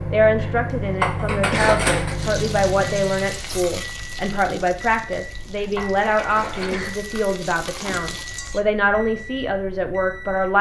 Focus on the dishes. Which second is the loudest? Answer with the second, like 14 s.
2 s.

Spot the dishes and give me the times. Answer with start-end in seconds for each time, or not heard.
1.0-2.2, 5.8-7.0.